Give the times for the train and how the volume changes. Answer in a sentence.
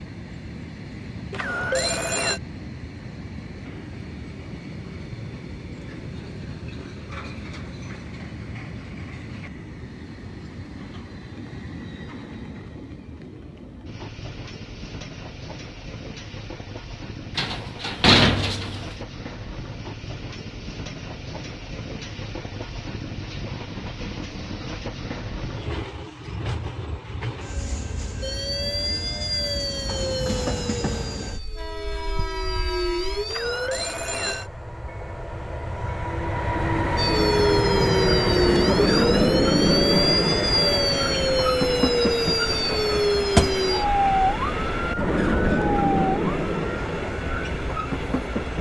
You can hear the train from 0.0 to 48.5 s, getting louder.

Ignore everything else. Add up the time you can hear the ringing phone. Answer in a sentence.
You can hear the ringing phone for 2 seconds altogether.